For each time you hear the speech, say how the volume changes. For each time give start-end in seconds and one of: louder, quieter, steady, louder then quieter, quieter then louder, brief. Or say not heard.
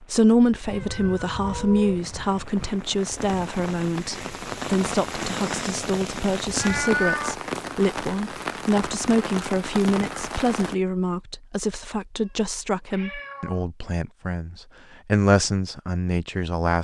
0.0-16.7 steady.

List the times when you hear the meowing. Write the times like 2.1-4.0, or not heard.
0.6-2.8, 6.5-7.3, 12.2-13.7.